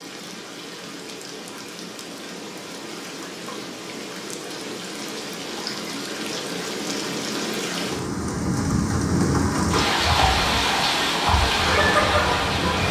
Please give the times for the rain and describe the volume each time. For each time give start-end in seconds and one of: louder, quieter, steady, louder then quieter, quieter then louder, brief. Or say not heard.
0.0-12.8 louder.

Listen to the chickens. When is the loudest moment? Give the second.
12 s.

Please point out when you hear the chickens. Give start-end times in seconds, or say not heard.
9.9-12.8.